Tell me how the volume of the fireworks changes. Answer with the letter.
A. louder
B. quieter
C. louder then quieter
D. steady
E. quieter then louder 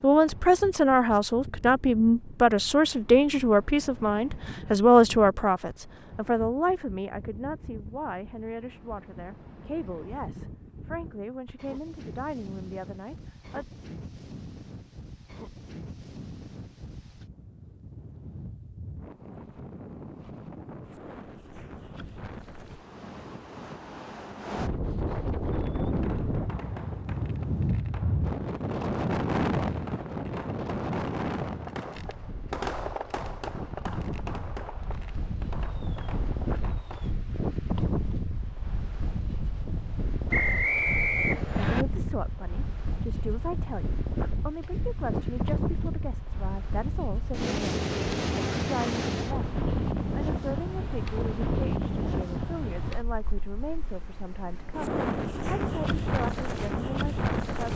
C.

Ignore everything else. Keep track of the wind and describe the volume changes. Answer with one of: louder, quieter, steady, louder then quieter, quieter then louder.
louder.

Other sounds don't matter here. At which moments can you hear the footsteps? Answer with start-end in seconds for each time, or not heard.
not heard.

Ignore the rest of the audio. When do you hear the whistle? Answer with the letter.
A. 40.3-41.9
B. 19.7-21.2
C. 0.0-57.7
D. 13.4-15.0
A.